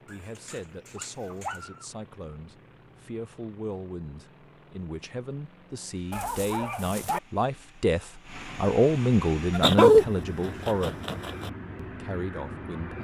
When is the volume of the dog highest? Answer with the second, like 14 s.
10 s.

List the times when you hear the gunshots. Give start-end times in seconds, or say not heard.
not heard.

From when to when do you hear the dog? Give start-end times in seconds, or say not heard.
0.1-1.9, 6.1-7.2, 9.6-11.5.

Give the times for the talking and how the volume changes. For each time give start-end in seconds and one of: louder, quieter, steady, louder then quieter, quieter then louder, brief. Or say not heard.
0.1-11.0 louder
11.8-12.9 brief.